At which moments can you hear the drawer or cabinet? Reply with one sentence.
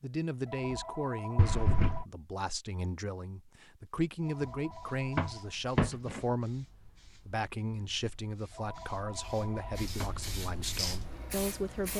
You can hear the drawer or cabinet from 1.4 to 2.0 s, from 5.2 to 6.2 s and from 9.2 to 10.2 s.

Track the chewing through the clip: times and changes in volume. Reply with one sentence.
The chewing can't be heard in this clip.